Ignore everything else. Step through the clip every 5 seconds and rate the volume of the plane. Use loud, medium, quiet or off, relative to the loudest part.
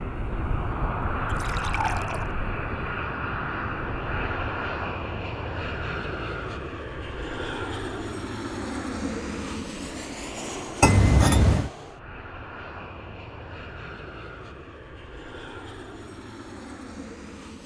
loud, loud, medium, medium.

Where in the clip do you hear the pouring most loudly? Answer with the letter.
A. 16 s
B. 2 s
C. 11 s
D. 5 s
C.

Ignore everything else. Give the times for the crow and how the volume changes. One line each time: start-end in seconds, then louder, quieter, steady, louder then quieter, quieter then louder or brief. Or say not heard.
not heard.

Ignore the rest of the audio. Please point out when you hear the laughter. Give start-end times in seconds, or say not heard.
not heard.